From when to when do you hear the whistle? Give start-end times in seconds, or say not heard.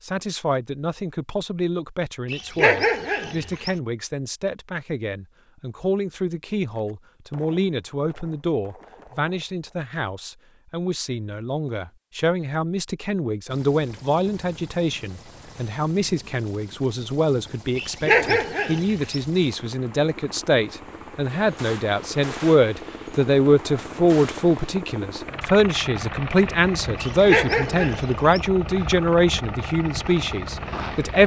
not heard.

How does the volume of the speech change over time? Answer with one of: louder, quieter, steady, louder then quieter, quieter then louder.
louder.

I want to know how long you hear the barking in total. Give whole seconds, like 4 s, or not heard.
4 s.